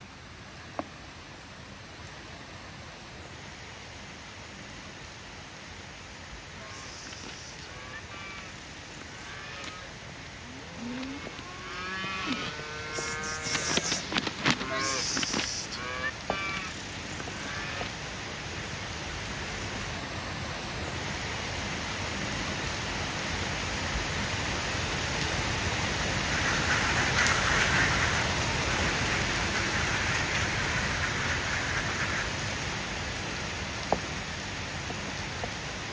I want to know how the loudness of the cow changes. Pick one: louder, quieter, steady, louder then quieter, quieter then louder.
louder then quieter.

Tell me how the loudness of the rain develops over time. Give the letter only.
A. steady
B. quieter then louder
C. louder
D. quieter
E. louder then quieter
C.